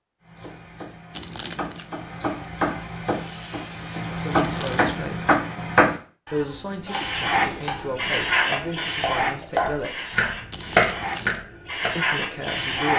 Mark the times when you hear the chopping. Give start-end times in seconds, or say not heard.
0.2-12.0.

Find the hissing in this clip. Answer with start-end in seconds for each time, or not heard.
3.0-5.3, 6.8-12.9.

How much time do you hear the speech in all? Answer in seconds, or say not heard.
6 s.